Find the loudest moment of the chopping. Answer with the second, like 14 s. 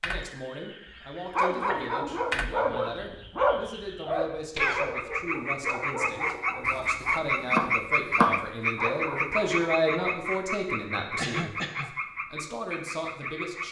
8 s.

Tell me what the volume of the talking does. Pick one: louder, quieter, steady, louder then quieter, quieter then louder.
louder then quieter.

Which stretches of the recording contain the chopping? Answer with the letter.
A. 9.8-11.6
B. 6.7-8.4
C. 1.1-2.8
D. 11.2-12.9
B.